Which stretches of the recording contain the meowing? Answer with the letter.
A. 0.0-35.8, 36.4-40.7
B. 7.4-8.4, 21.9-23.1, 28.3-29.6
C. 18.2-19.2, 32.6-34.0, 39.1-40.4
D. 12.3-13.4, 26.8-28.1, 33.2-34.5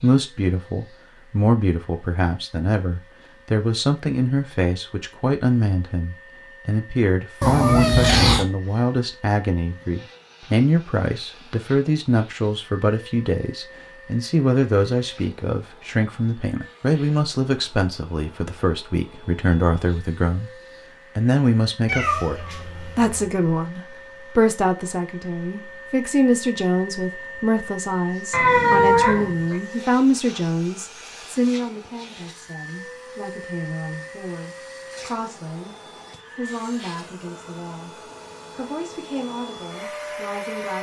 B.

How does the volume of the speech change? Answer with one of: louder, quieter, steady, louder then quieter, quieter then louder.
quieter.